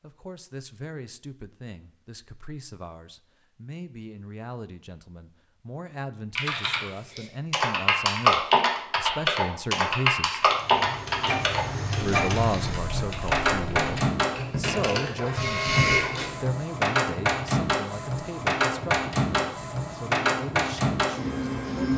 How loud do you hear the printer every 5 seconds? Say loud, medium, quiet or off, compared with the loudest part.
off, off, loud, loud, loud.